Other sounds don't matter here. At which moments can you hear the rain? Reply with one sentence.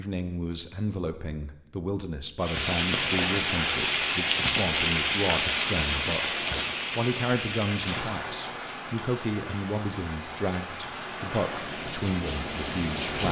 You can hear the rain from 2.4 to 13.2 s.